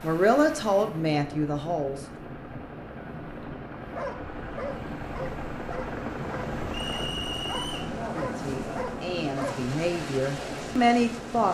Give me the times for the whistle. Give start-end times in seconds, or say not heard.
6.7-7.9.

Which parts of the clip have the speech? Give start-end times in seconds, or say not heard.
0.0-1.9, 7.8-11.4.